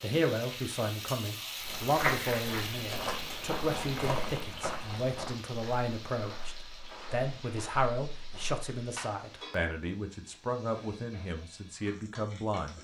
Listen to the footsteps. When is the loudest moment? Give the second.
2 s.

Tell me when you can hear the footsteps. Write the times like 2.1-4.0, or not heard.
1.6-9.1.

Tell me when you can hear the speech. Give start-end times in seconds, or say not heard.
0.0-12.7.